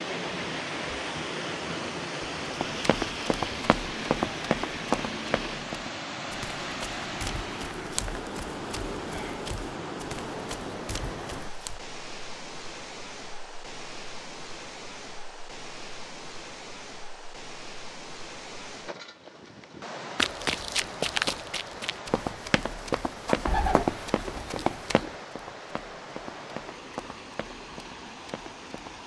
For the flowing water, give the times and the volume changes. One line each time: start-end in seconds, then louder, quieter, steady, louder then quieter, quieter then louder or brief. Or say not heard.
0.0-29.0 quieter.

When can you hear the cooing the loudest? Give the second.
24 s.